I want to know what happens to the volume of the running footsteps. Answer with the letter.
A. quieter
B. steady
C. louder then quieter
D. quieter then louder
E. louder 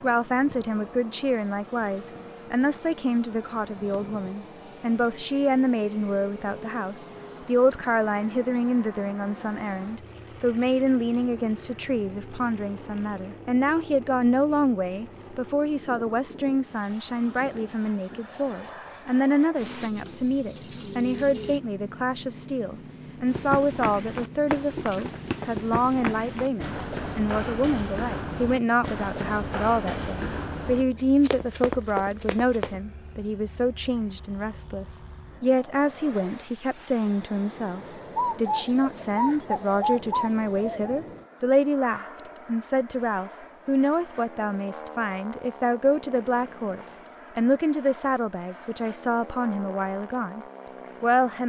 B.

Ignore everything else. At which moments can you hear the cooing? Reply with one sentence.
You can hear the cooing from 19.6 to 21.6 s and from 38.1 to 41.0 s.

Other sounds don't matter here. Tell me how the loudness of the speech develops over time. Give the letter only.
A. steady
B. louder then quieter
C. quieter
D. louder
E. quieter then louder
A.